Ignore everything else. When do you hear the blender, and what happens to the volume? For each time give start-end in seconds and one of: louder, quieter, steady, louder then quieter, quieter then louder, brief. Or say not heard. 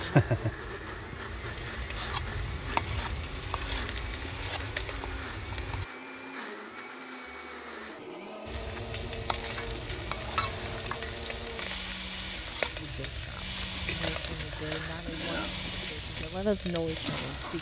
0.0-17.4 steady.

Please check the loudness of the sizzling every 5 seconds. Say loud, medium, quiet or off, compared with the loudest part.
loud, medium, loud, loud.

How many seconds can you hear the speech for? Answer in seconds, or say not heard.
5 s.